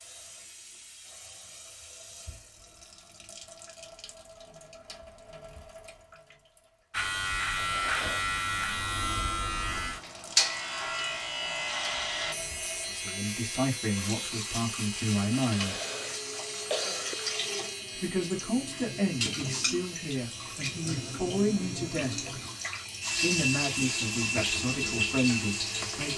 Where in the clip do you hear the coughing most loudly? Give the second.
17 s.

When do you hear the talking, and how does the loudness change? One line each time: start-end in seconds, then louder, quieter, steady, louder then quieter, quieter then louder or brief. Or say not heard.
13.0-15.8 brief
17.9-22.3 quieter then louder
23.2-26.1 brief.